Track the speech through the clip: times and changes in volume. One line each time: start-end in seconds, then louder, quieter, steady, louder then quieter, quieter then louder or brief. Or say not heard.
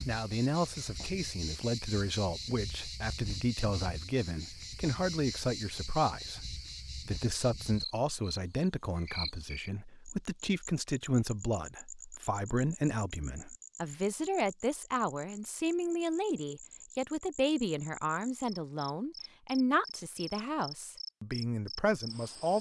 0.1-22.5 steady.